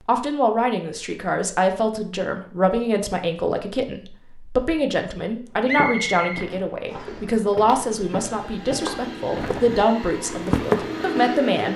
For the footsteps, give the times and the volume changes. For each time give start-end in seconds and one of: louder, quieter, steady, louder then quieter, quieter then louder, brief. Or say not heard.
5.6-11.2 louder.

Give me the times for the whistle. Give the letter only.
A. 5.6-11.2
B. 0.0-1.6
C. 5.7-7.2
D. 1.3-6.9
C.